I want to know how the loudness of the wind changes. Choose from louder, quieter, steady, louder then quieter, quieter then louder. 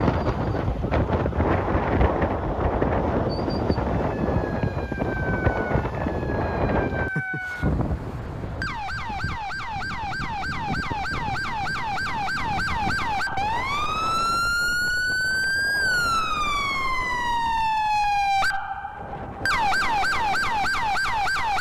quieter.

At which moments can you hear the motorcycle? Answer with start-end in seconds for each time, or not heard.
not heard.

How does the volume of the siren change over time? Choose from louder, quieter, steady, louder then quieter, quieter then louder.
louder.